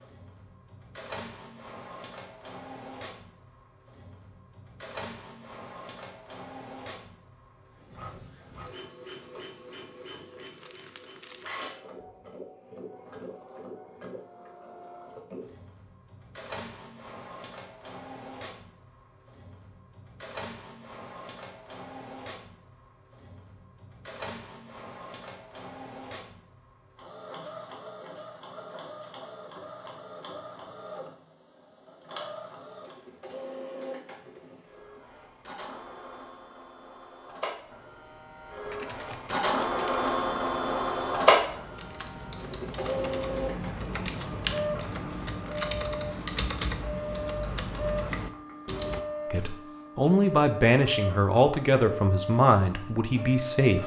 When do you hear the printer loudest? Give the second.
41 s.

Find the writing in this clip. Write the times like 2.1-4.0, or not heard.
not heard.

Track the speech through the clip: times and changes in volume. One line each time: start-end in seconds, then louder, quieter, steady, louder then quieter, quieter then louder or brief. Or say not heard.
49.3-53.8 quieter.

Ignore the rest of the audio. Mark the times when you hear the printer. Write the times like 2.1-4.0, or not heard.
0.0-53.8.